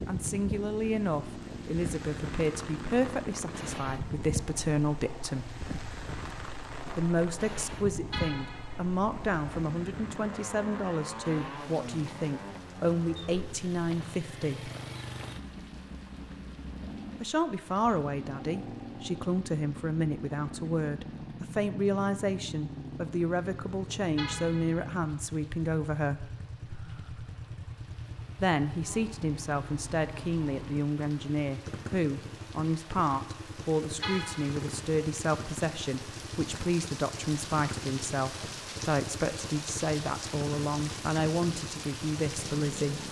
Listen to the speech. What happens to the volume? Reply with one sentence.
The volume of the speech stays about the same.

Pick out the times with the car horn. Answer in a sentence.
The car horn can be heard from 8.1 to 8.8 s, from 24.1 to 24.9 s and from 34.0 to 34.7 s.